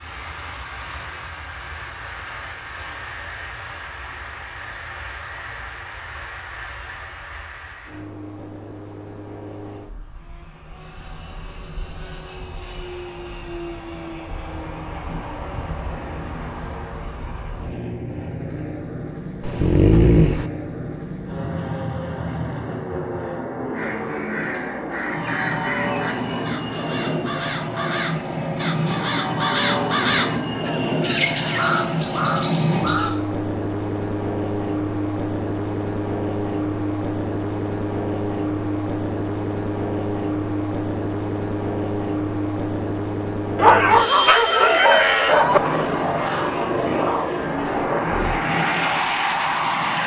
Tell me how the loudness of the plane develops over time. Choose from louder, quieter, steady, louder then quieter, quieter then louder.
louder.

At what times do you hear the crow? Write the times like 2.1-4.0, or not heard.
23.7-33.2.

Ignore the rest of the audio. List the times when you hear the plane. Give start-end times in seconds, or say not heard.
0.0-50.0.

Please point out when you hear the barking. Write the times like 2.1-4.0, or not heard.
19.4-20.4, 43.5-45.6.